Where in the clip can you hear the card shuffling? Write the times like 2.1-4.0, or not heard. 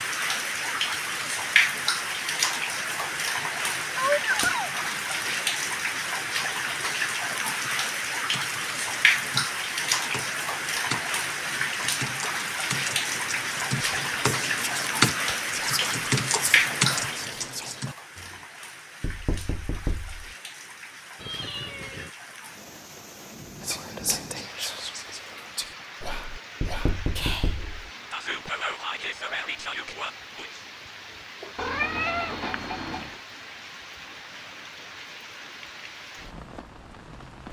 not heard.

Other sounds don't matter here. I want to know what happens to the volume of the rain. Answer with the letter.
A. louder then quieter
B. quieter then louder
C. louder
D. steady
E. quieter
E.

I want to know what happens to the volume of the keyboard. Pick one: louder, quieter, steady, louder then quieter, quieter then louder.
louder.